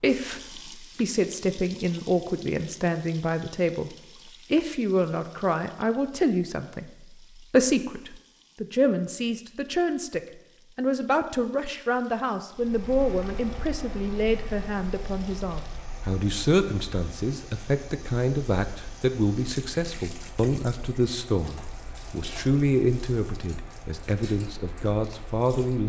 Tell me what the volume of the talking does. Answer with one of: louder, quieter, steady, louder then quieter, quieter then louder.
steady.